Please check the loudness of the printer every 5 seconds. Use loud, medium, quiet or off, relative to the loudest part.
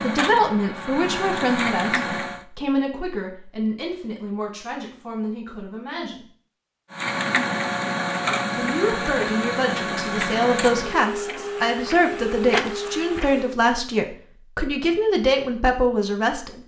loud, loud, loud, off.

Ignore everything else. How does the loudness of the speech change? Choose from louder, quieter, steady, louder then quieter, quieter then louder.
quieter then louder.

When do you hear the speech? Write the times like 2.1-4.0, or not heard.
0.0-6.2, 8.6-16.6.